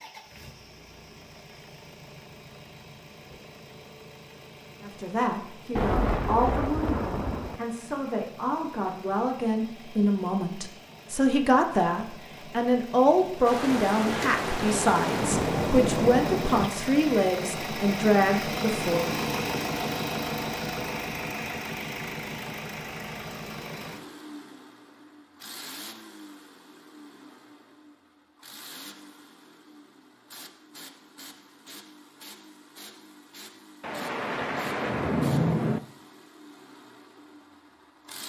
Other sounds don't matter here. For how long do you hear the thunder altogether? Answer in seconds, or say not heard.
7 s.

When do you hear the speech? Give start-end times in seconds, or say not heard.
4.8-19.1.